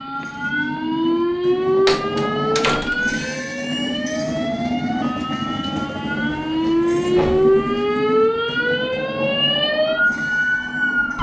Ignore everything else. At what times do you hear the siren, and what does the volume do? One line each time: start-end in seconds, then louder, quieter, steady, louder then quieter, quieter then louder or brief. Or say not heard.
0.0-11.1 quieter then louder.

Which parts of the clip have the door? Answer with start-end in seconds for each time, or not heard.
1.9-3.1, 7.0-7.5.